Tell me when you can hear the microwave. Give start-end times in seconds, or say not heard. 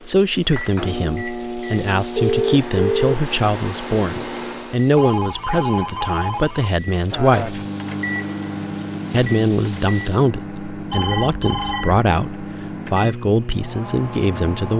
0.0-4.9, 6.8-14.7.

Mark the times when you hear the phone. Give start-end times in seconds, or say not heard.
2.1-3.1, 5.0-6.7, 10.9-12.0.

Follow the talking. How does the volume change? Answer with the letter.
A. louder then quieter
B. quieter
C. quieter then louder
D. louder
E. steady
E.